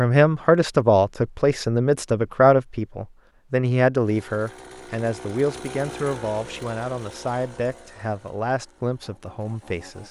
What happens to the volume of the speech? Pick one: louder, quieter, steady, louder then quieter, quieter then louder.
quieter.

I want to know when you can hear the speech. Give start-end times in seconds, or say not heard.
0.0-10.0.